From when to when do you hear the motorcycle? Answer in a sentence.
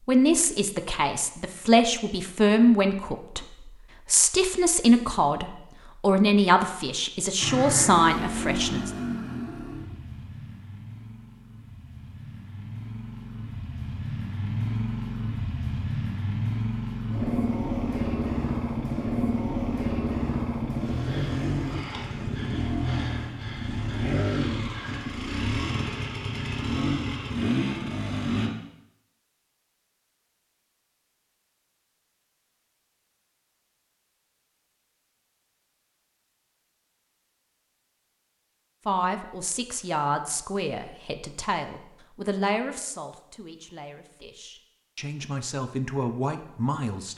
The motorcycle can be heard from 7.4 to 28.5 s.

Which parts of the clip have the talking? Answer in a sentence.
You can hear the talking from 0.1 to 3.5 s, from 4.0 to 8.9 s and from 38.9 to 47.1 s.